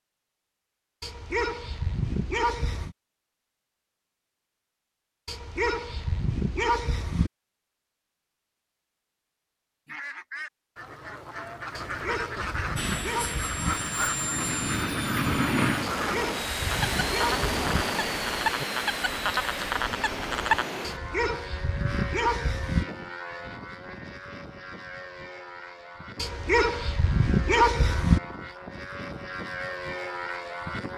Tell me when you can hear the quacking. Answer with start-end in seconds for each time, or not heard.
9.8-20.6.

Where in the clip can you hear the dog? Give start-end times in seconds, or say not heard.
1.0-3.0, 5.2-7.3, 11.8-13.8, 15.9-17.9, 20.8-22.9, 26.1-28.2.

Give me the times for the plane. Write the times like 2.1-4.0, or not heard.
12.8-30.9.